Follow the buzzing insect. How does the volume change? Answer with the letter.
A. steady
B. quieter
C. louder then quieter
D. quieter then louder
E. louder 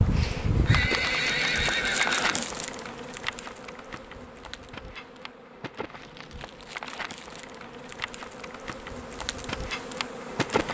D.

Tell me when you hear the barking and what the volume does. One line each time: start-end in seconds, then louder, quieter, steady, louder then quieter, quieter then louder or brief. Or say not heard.
not heard.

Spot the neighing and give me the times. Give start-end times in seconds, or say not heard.
0.7-2.5.